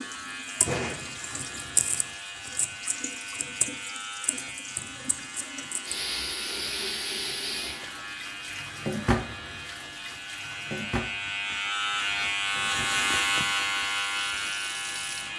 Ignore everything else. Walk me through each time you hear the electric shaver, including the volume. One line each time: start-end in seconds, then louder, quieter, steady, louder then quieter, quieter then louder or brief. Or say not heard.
0.0-15.3 louder.